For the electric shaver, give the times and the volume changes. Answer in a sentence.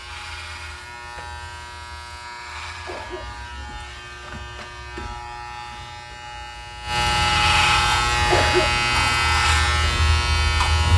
You can hear the electric shaver from 0.0 to 10.9 s, getting louder.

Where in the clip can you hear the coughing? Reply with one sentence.
The coughing can be heard from 2.9 to 3.8 s and from 8.3 to 9.1 s.